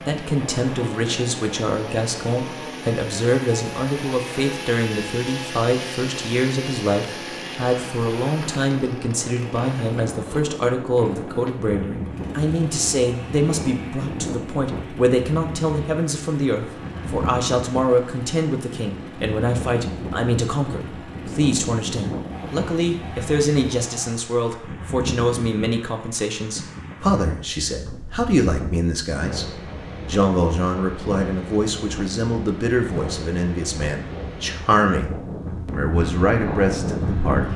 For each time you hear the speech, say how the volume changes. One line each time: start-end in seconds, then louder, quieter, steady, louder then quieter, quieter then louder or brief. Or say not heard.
0.1-37.5 steady.